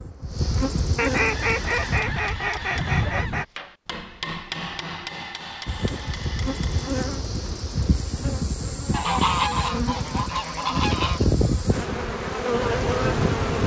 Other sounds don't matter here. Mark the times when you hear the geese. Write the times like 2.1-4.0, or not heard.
0.9-3.5, 8.9-11.2.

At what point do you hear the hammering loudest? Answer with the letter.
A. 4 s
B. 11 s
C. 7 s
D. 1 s
A.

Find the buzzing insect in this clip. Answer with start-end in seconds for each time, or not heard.
0.0-2.0, 5.7-13.6.